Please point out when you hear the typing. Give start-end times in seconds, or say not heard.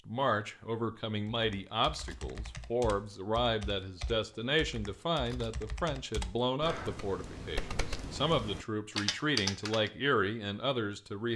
1.3-9.9.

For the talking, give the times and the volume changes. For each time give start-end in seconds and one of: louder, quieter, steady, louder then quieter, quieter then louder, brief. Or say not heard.
0.1-11.3 steady.